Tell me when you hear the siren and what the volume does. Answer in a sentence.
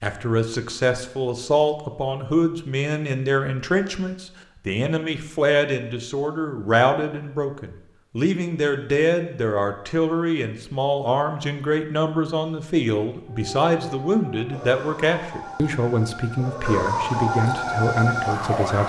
You can hear the siren from 13.2 to 18.8 s, getting louder.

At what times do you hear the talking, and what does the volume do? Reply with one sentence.
You can hear the talking from 0.0 to 18.8 s, at a steady volume.